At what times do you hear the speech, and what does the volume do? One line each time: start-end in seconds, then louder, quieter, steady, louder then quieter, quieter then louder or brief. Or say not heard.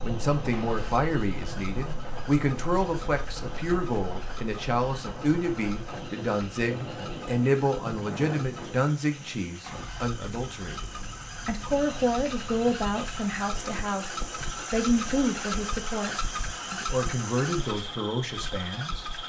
0.0-19.1 steady.